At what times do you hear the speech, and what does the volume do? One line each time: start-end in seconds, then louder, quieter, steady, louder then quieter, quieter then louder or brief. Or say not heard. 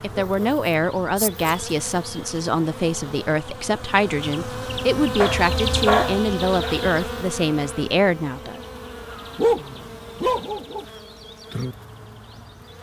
0.0-8.6 steady.